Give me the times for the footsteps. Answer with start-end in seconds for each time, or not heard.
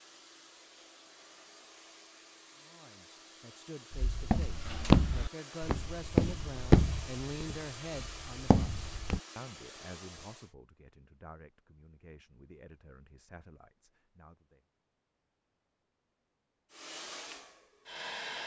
3.9-9.2.